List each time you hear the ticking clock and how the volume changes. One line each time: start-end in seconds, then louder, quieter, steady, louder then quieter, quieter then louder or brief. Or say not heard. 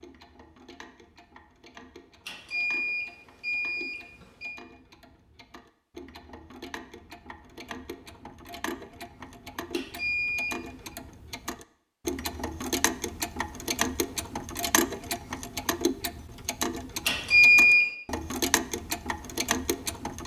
0.0-20.2 louder.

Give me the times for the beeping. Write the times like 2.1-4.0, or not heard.
2.2-4.6, 9.7-10.9, 17.1-17.9.